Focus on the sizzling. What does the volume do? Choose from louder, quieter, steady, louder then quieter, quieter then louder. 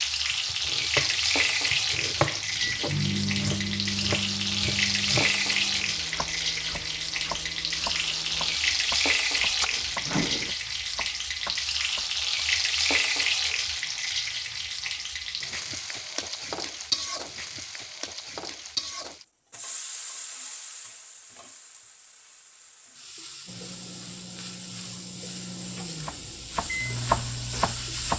quieter.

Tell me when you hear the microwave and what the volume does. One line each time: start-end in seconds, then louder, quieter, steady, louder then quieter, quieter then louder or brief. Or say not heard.
2.5-10.6 quieter then louder
23.4-28.1 louder.